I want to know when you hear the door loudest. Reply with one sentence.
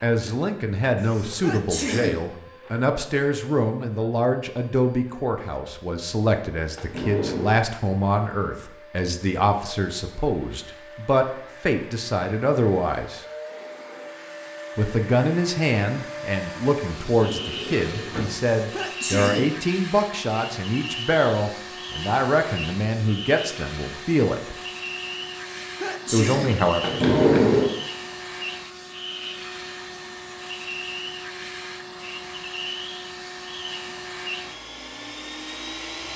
The volume of the door peaks at 27 seconds.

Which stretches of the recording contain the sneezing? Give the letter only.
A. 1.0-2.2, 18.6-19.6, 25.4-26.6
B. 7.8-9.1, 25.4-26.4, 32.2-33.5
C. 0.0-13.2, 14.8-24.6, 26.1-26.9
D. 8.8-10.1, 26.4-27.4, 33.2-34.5
A.